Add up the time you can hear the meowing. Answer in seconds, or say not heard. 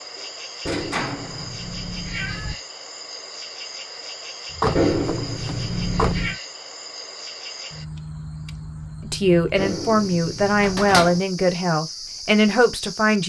5 s.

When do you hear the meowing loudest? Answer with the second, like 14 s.
5 s.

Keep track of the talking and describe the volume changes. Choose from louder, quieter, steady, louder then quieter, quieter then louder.
steady.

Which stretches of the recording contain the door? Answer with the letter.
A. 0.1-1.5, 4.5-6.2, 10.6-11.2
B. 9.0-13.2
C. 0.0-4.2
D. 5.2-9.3
A.